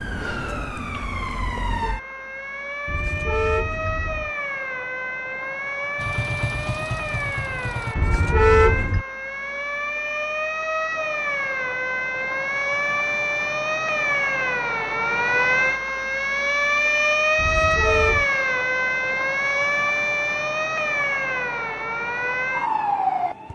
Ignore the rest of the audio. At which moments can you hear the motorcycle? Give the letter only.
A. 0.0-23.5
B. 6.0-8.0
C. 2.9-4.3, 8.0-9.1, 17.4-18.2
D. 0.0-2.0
B.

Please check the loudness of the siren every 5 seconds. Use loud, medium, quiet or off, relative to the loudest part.
medium, medium, loud, loud, loud.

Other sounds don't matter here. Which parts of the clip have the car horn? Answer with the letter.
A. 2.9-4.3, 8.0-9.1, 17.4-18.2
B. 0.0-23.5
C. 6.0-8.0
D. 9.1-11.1
A.